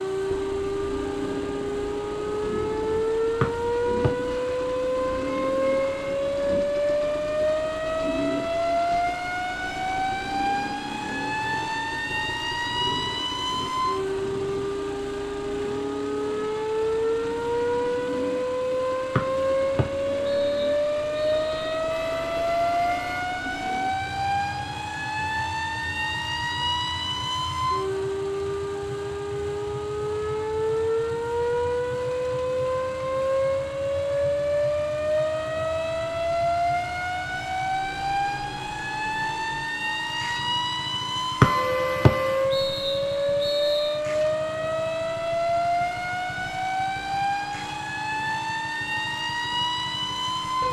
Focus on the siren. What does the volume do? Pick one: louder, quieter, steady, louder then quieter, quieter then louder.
steady.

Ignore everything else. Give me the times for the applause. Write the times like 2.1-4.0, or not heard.
not heard.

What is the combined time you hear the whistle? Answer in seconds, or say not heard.
6 s.